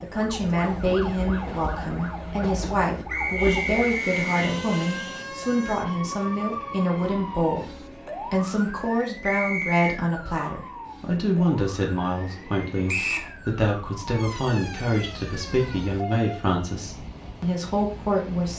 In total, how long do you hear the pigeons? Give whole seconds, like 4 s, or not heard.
not heard.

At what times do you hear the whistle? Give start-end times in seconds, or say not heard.
3.0-4.5, 9.2-10.0, 12.8-13.3.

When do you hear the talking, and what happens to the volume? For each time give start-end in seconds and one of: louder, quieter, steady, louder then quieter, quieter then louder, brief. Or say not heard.
0.0-18.5 steady.